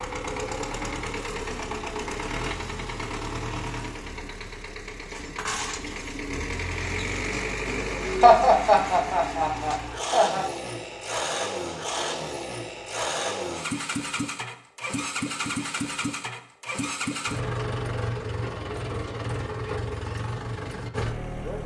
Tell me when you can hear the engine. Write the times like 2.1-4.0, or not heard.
0.0-21.6.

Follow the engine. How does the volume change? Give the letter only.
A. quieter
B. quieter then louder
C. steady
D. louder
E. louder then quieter
C.